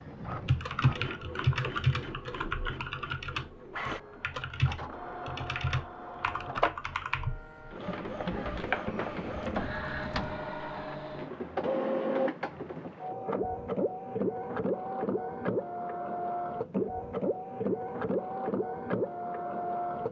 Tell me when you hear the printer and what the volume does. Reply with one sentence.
You can hear the printer from 0.0 to 20.0 s, getting louder.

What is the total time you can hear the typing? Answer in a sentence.
The typing can be heard for 10 seconds in total.